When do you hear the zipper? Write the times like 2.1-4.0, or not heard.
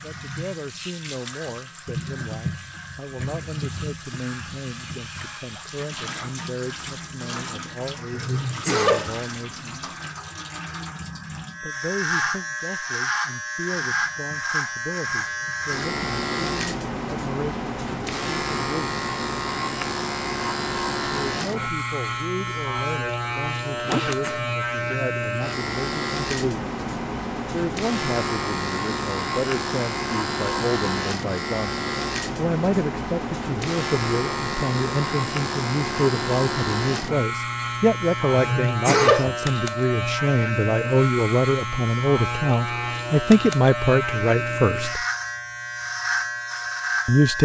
23.8-24.6.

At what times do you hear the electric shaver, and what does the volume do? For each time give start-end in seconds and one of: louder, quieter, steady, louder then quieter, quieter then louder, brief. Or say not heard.
0.0-47.4 louder.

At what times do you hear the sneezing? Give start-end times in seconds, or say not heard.
8.1-9.2, 23.6-24.4, 38.3-39.4.